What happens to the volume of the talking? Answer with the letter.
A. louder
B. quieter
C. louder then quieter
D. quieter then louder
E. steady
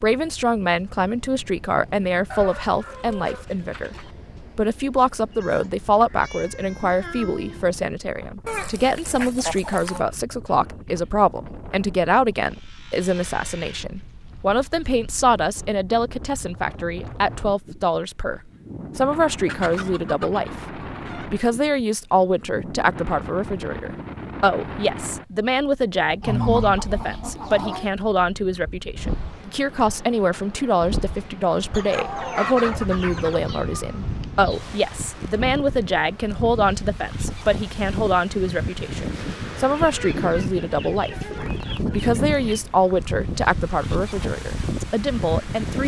E.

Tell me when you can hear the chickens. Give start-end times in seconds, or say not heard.
2.3-4.2, 8.4-10.1, 19.4-21.2, 26.2-27.9, 31.7-33.5, 39.6-42.6.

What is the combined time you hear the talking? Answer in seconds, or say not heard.
46 s.